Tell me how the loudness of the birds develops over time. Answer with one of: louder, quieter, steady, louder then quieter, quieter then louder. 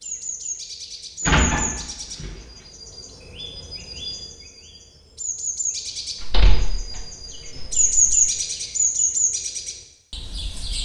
quieter then louder.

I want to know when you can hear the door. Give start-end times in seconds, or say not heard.
1.2-2.3, 6.2-8.2.